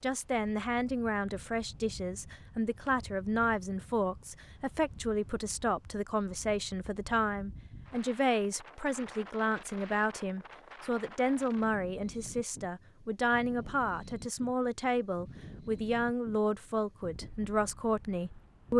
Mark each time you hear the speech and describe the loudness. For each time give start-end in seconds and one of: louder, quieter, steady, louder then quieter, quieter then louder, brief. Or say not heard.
0.0-18.7 steady.